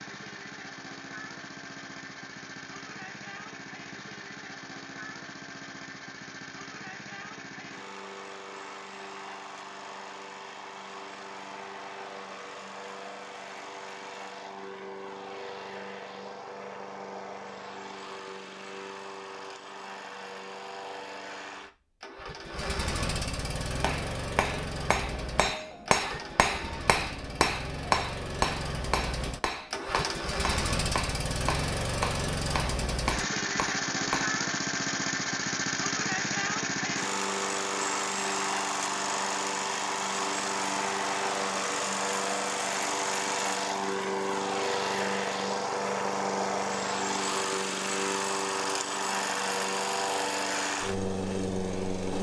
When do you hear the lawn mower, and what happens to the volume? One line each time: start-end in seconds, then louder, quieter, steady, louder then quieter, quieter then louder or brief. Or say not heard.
0.0-52.1 louder.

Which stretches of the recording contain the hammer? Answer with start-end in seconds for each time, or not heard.
23.8-34.4.